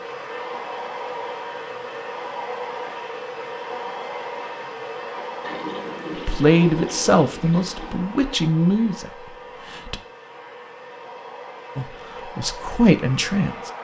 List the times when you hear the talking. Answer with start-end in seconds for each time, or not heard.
6.1-10.0, 11.8-13.7.